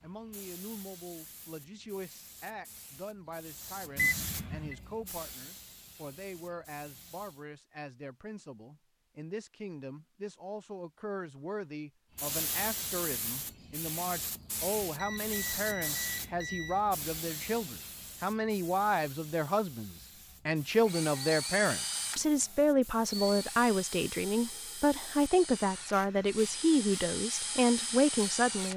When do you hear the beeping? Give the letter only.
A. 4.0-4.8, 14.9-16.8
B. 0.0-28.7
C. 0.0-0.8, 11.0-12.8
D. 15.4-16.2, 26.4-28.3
A.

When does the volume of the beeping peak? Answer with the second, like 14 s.
4 s.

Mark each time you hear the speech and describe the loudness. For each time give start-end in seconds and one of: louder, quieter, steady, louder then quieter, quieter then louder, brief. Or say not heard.
0.0-28.7 louder.